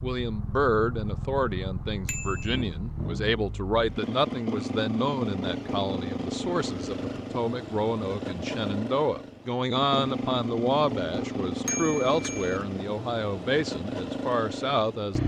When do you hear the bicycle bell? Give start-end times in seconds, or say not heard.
2.0-2.6, 11.7-12.6.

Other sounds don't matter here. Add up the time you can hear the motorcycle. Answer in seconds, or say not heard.
15 s.